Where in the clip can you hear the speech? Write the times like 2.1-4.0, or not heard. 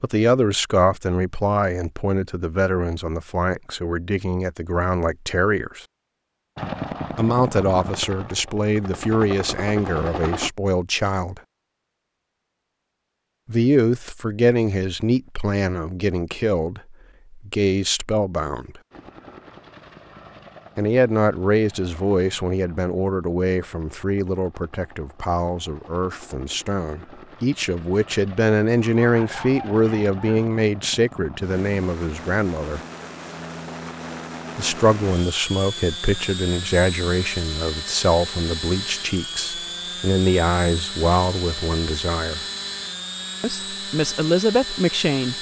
0.0-5.8, 7.2-11.4, 13.4-18.8, 20.8-32.8, 34.5-42.5, 43.4-45.3.